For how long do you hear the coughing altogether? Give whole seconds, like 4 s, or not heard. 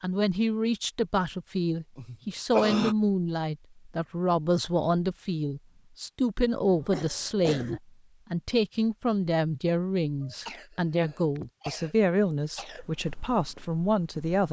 5 s.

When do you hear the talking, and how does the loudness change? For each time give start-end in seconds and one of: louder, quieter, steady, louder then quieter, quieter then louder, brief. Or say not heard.
0.0-14.4 steady.